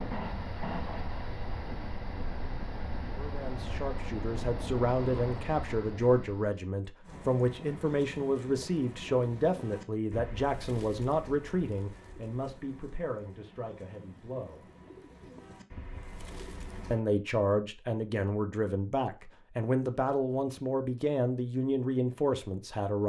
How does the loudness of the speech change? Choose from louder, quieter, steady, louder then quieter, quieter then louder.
steady.